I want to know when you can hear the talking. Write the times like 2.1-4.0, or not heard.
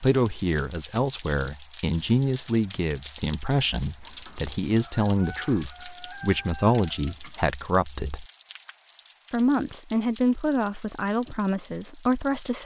0.0-8.2, 9.3-12.6.